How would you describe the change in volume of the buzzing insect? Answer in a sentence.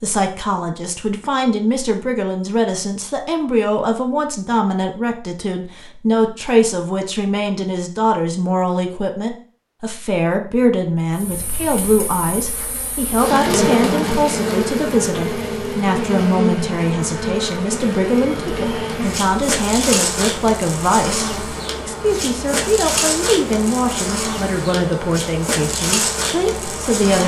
The volume of the buzzing insect stays about the same.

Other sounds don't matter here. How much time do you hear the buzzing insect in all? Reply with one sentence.
You can hear the buzzing insect for 16 seconds altogether.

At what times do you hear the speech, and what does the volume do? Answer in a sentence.
You can hear the speech from 0.0 to 27.2 s, at a steady volume.